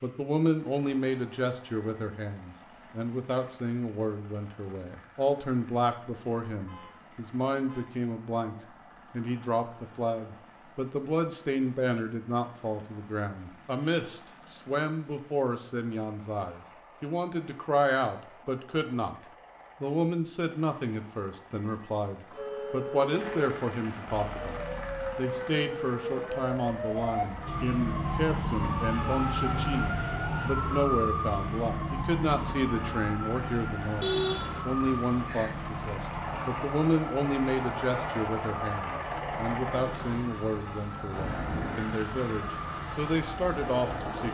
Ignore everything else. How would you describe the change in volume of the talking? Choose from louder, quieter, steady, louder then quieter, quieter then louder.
steady.